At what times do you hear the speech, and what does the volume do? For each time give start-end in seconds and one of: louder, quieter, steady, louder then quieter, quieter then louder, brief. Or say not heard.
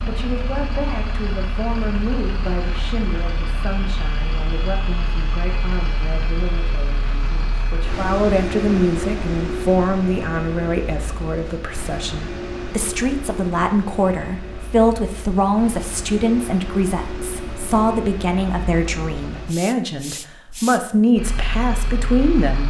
0.0-22.6 louder.